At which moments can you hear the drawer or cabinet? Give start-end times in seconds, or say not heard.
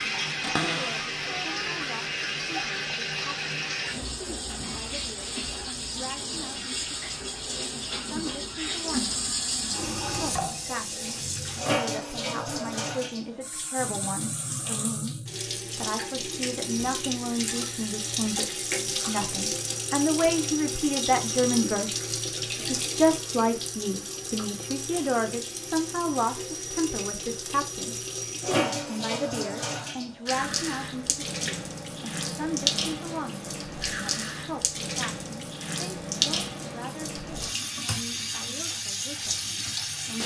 0.4-1.8.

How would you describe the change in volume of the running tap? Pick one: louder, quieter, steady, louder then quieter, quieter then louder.
steady.